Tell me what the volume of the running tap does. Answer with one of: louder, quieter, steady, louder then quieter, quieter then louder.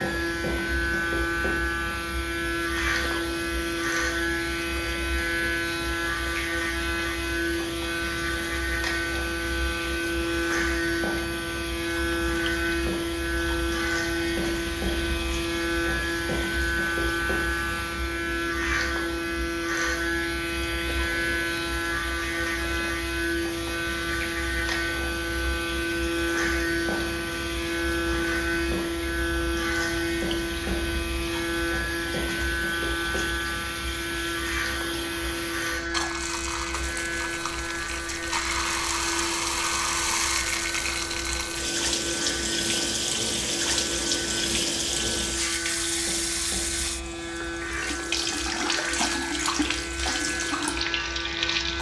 louder.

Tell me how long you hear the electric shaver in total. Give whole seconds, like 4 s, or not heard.
52 s.